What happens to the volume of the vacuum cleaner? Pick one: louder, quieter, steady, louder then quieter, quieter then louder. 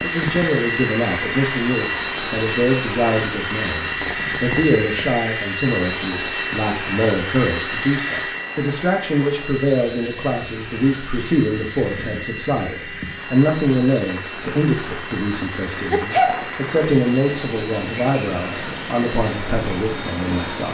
quieter.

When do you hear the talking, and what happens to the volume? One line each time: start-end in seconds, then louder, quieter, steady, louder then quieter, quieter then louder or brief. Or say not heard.
0.0-20.7 steady.